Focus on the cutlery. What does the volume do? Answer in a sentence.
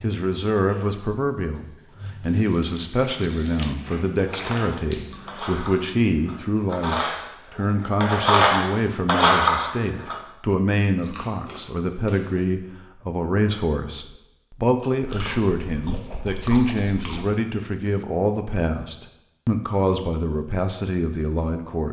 The volume of the cutlery goes up.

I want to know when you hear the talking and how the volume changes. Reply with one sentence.
You can hear the talking from 0.0 to 21.8 s, at a steady volume.